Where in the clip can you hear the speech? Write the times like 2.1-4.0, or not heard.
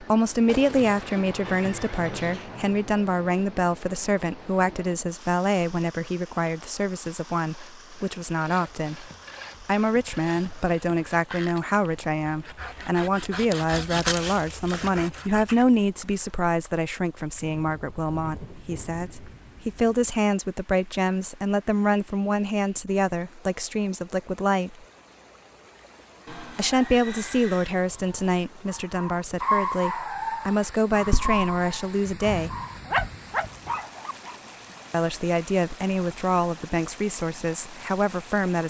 0.0-24.8, 26.6-32.5, 34.9-38.6.